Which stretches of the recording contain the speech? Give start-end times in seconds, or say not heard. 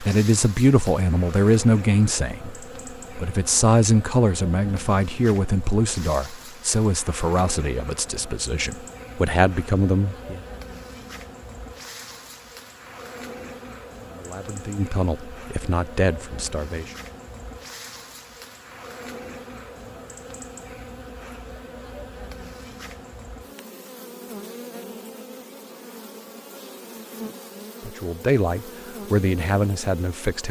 0.0-10.4, 14.1-16.9, 27.9-30.4.